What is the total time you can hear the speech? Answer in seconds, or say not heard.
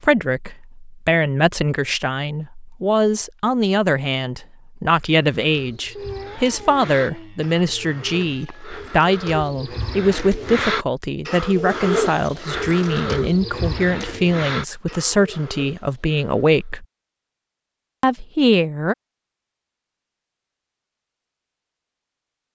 18 s.